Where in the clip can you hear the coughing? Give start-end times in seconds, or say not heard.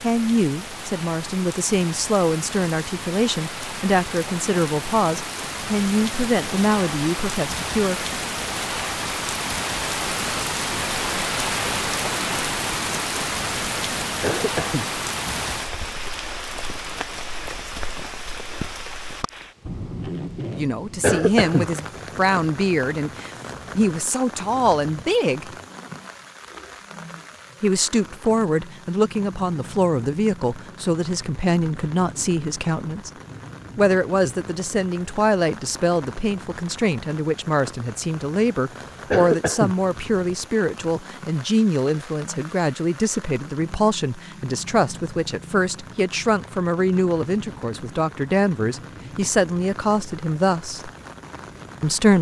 14.2-14.8, 21.0-21.6, 39.1-39.8.